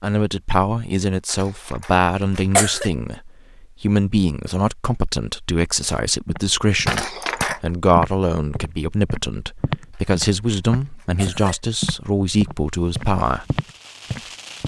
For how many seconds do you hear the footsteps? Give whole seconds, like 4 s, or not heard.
9 s.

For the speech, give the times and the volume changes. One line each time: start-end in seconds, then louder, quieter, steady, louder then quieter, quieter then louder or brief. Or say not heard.
0.0-13.4 steady.